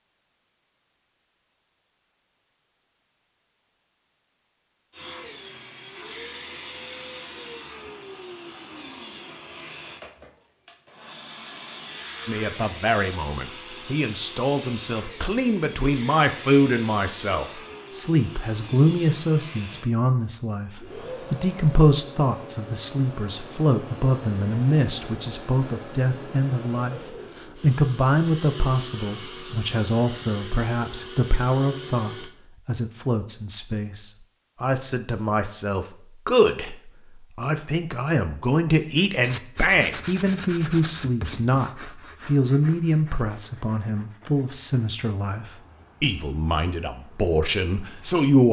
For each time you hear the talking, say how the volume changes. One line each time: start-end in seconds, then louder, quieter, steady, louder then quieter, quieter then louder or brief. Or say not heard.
12.2-48.4 steady.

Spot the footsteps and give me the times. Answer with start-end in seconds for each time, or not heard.
not heard.